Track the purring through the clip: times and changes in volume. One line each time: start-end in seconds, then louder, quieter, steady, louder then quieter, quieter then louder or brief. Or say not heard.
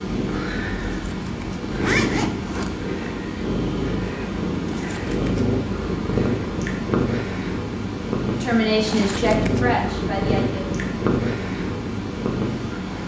0.0-13.0 steady.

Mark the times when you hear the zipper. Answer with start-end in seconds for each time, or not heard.
1.1-2.7, 4.7-5.5, 8.8-9.6.